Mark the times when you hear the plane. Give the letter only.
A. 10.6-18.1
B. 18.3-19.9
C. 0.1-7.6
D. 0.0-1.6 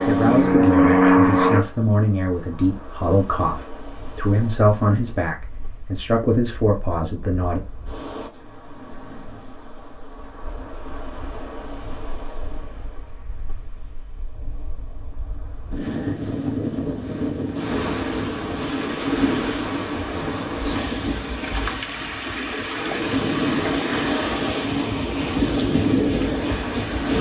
D.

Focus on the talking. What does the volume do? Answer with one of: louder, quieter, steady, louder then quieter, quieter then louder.
steady.